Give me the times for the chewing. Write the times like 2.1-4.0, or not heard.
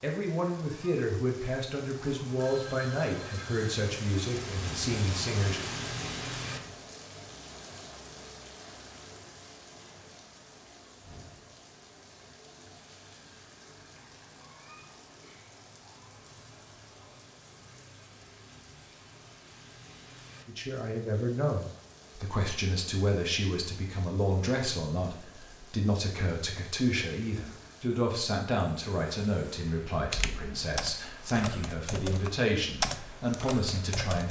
not heard.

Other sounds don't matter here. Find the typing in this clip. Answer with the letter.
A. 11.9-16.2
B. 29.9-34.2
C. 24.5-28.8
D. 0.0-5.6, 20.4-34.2
B.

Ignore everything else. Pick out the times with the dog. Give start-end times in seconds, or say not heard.
not heard.